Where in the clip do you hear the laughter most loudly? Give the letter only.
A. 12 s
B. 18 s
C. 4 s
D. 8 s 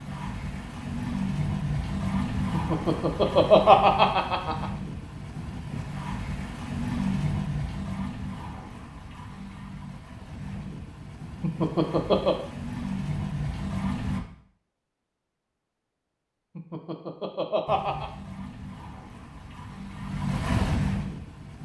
C.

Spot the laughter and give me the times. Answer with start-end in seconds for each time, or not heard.
2.5-4.7, 11.4-12.3, 16.6-18.1.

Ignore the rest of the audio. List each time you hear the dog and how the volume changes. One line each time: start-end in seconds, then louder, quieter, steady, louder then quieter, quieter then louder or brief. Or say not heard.
not heard.